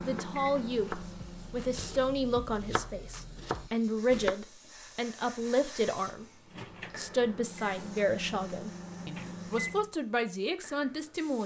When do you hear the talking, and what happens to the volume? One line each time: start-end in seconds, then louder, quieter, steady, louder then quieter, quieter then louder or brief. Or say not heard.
0.0-11.4 steady.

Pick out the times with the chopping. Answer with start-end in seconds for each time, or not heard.
0.0-4.3.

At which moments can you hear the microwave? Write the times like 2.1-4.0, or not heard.
0.0-1.9, 6.5-9.9.